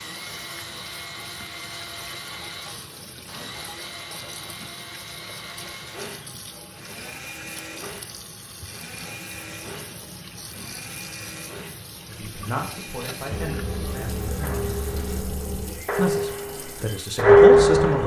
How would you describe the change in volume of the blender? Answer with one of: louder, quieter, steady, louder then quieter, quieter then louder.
quieter.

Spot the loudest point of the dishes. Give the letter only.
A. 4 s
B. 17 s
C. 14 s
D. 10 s
B.